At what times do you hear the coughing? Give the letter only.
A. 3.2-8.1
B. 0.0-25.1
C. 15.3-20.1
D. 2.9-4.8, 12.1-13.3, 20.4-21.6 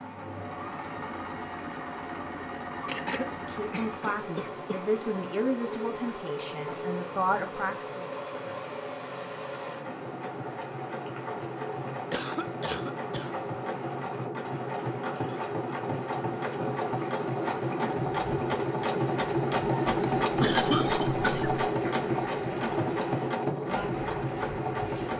D.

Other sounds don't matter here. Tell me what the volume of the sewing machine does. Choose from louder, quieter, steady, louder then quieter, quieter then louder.
louder.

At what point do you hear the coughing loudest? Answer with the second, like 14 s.
21 s.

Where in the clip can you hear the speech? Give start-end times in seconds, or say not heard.
3.2-8.1.